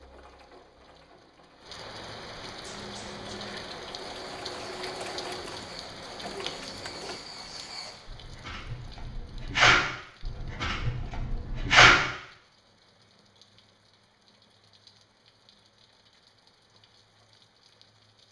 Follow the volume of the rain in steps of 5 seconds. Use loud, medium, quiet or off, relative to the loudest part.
loud, loud, quiet, quiet.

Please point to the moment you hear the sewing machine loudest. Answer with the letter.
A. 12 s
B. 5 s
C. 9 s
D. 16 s
B.